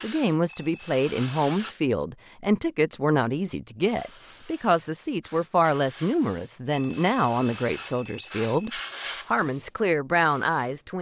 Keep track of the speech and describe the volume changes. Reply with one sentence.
The volume of the speech stays about the same.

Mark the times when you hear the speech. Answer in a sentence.
The speech can be heard from 0.0 to 10.9 s.